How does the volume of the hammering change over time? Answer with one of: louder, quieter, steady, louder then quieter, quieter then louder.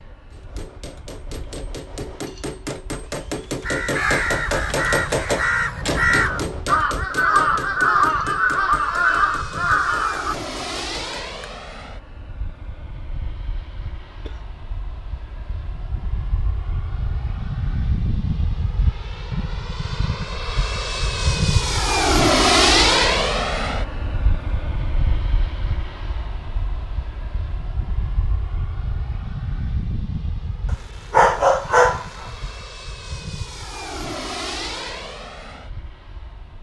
louder then quieter.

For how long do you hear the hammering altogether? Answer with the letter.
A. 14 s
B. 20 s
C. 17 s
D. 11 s
D.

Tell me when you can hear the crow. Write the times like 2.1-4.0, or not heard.
3.6-10.3.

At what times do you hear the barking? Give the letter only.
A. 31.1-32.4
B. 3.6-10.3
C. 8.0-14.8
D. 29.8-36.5
A.